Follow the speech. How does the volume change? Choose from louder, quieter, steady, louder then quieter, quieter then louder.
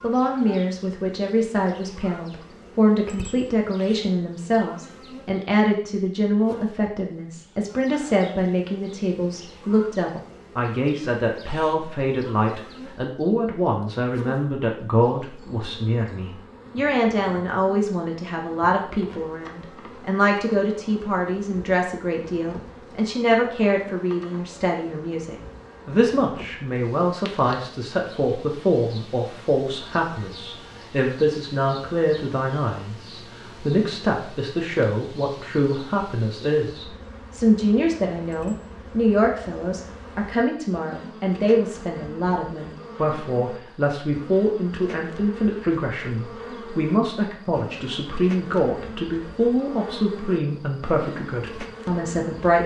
steady.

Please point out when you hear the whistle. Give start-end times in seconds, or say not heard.
not heard.